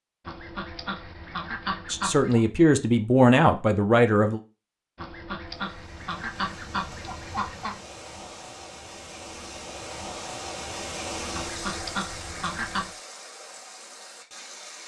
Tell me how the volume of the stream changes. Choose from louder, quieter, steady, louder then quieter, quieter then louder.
louder then quieter.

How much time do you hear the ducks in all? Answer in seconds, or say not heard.
7 s.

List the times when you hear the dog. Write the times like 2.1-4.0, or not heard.
not heard.